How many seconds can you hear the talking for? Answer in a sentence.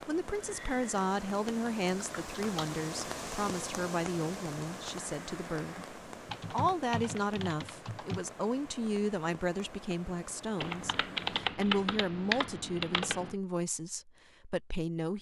You can hear the talking for 15 seconds altogether.